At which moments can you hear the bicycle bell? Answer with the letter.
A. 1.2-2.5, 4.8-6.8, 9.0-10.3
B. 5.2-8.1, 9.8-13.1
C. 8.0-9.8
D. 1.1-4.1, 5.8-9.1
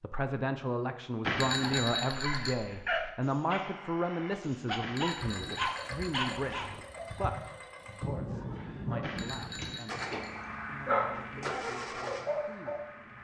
A.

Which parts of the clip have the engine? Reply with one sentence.
You can hear the engine from 5.2 to 8.1 s and from 9.8 to 13.1 s.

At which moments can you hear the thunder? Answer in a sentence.
You can hear the thunder from 8.0 to 9.8 s.